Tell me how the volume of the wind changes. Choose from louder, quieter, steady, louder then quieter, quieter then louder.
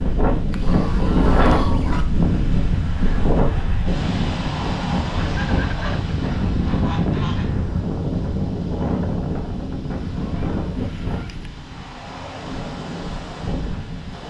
quieter.